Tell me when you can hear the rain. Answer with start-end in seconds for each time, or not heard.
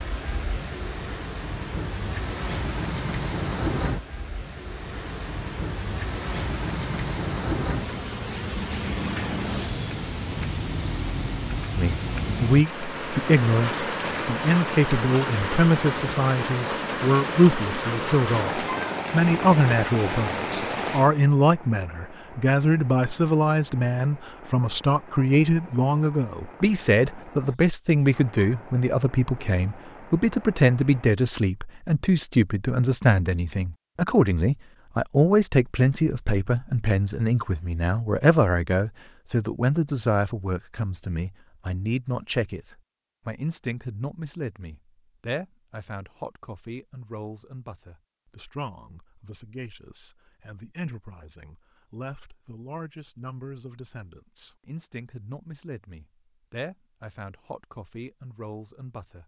0.0-31.1.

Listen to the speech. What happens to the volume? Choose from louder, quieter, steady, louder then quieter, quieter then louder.
quieter.